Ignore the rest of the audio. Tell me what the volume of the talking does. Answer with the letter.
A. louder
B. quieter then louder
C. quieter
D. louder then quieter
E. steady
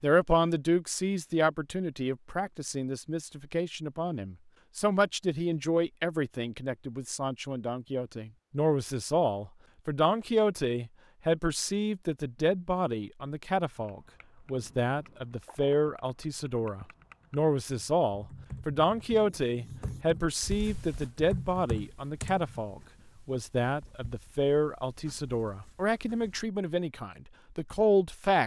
E.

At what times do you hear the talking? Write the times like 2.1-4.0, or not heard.
0.0-28.4.